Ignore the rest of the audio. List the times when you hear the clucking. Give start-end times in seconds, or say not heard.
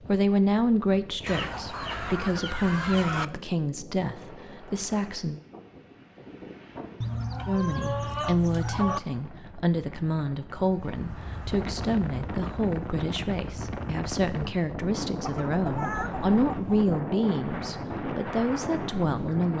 1.2-3.2, 7.0-9.0, 15.2-16.9.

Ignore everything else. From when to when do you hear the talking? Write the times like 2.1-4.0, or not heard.
0.1-5.4, 7.5-19.5.